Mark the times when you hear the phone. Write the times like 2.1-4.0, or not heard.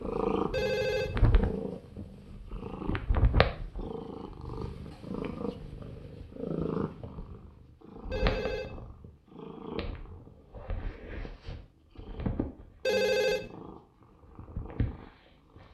0.5-1.2, 8.1-8.8, 12.8-13.5.